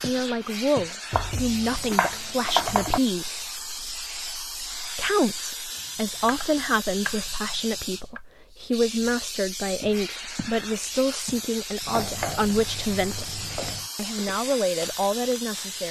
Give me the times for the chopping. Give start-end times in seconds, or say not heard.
1.1-3.0, 5.8-8.2, 11.9-13.9.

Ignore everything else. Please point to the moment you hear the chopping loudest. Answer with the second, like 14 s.
3 s.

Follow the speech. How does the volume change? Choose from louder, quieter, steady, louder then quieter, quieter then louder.
steady.